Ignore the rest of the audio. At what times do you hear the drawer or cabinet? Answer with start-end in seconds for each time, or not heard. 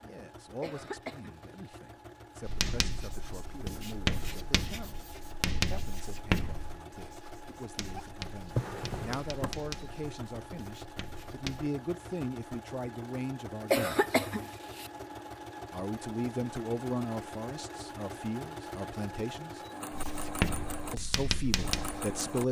8.4-9.7.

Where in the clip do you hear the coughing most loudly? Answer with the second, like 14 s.
14 s.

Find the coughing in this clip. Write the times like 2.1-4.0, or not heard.
0.6-1.8, 13.7-14.9.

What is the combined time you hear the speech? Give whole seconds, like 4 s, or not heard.
19 s.